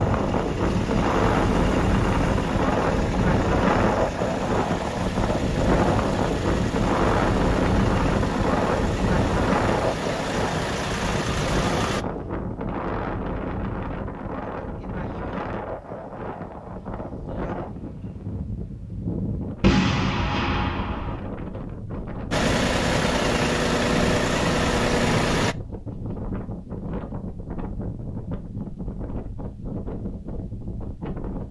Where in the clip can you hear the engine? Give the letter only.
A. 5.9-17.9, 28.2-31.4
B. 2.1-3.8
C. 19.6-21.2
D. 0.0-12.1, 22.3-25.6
D.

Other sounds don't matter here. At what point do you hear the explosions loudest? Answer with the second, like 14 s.
20 s.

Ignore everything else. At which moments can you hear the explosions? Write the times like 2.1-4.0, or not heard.
19.6-21.2.